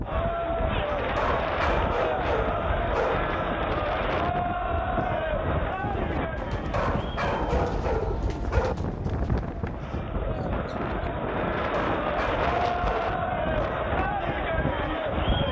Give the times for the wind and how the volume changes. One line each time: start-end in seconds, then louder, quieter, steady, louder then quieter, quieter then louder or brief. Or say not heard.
0.0-15.4 steady.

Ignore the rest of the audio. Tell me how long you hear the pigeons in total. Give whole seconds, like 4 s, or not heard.
5 s.